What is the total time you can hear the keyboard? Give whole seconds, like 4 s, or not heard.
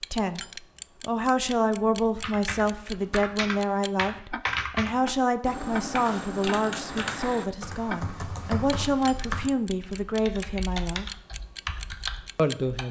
11 s.